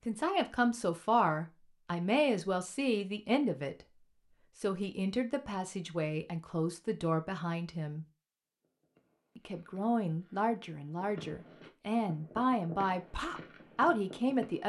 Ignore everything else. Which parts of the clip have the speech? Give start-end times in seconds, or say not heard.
0.1-8.1, 9.3-14.6.